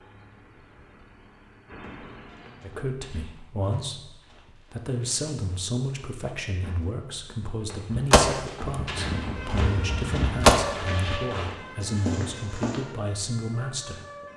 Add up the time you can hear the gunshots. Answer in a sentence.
You can hear the gunshots for 3 seconds altogether.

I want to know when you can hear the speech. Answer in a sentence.
The speech can be heard from 2.6 to 14.1 s.